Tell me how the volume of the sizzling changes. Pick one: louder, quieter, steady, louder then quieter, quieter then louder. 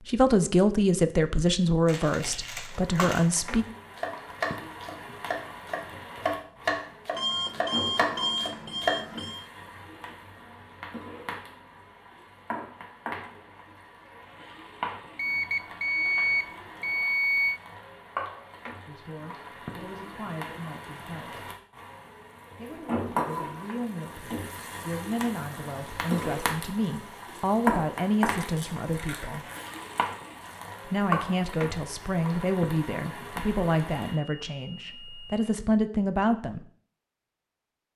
louder.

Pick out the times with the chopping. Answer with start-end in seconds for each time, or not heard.
4.0-9.0.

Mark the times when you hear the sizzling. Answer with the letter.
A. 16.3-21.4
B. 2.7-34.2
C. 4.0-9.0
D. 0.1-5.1
B.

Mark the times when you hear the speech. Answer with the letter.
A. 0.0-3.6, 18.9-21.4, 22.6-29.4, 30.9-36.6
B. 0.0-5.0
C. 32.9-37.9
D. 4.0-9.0
A.